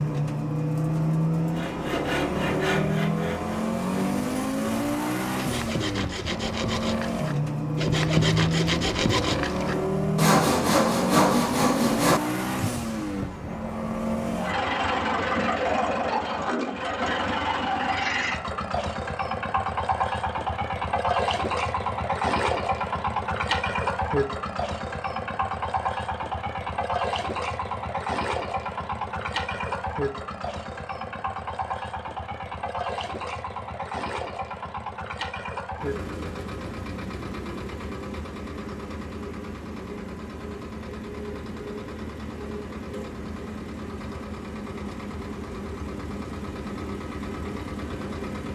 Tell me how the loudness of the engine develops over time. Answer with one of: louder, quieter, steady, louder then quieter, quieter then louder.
quieter.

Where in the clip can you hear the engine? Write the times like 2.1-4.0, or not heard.
0.0-48.5.